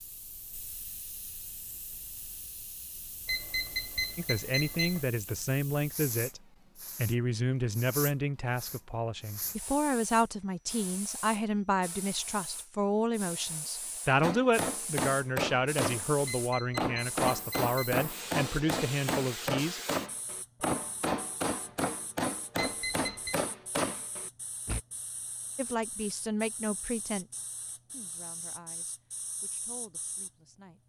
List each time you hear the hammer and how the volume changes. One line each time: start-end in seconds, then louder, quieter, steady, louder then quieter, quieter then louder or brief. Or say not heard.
14.2-24.8 steady.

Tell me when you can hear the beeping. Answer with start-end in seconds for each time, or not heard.
3.2-5.0, 16.2-17.8, 22.6-23.4.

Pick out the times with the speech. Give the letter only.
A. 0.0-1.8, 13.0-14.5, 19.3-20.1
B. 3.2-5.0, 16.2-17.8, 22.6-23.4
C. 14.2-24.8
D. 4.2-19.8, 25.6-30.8
D.